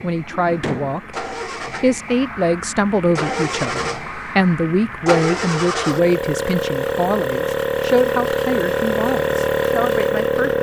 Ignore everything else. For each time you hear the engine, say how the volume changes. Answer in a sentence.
You can hear the engine from 0.0 to 10.5 s, getting louder.